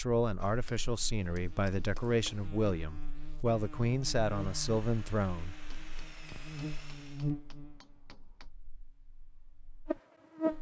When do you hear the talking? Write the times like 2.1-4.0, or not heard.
0.0-5.5.